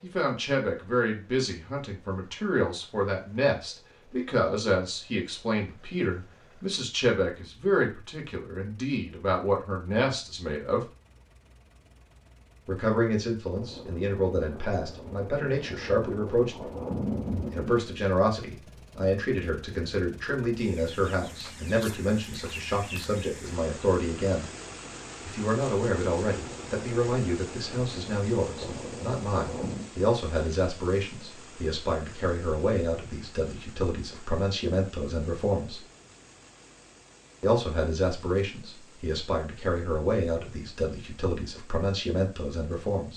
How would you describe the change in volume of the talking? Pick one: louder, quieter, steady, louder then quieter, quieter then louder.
steady.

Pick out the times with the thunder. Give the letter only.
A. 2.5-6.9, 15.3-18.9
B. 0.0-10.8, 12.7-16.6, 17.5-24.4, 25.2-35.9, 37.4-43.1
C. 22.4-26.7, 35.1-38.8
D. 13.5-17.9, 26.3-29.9
D.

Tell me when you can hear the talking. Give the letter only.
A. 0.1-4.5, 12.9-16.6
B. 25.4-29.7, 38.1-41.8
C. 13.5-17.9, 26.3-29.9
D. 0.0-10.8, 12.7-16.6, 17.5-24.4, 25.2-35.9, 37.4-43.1
D.